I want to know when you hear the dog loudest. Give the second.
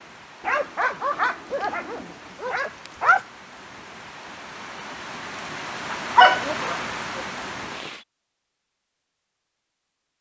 6 s.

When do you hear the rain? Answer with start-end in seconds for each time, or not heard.
0.0-8.1.